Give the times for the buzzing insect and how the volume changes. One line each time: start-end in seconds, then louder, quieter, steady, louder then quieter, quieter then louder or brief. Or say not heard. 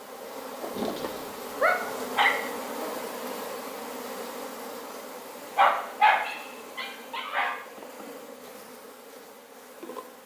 0.0-10.2 quieter.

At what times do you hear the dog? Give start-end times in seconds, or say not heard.
0.8-2.4, 5.5-7.5.